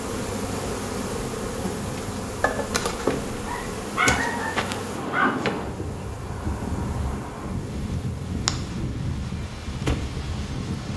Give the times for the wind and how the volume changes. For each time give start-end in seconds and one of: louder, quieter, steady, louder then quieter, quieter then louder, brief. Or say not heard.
0.0-10.9 louder.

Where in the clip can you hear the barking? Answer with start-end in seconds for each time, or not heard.
3.3-5.4.